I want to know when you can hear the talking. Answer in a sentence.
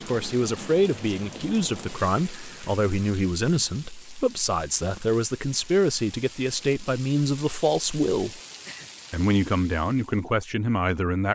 The talking can be heard from 0.1 to 8.4 s and from 9.1 to 11.3 s.